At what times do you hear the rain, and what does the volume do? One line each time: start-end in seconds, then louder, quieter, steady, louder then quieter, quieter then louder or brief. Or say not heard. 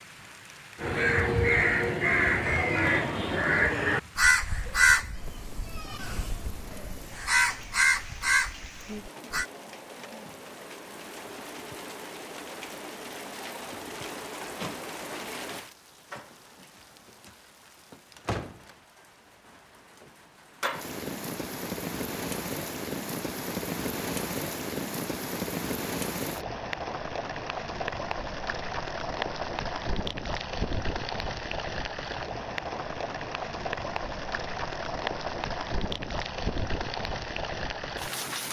0.0-38.4 louder.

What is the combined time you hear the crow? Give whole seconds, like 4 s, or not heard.
9 s.